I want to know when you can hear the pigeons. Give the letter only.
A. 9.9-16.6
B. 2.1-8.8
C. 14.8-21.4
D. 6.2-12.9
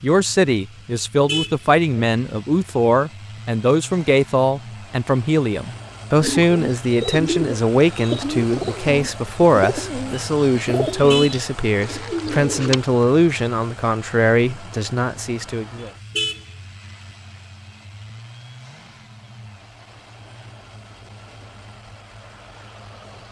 D.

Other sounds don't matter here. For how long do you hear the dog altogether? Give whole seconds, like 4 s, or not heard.
not heard.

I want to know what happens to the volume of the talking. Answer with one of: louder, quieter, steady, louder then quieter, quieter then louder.
steady.